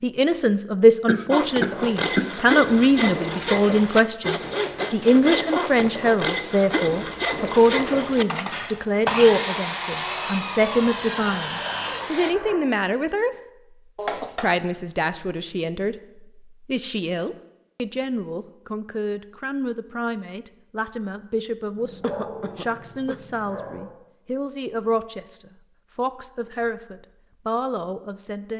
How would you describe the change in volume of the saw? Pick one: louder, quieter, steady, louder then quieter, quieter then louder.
steady.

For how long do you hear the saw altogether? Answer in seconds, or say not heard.
11 s.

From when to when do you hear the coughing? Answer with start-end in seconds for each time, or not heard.
1.1-2.3, 13.9-14.7, 22.0-23.1.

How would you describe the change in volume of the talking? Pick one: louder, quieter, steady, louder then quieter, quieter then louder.
quieter.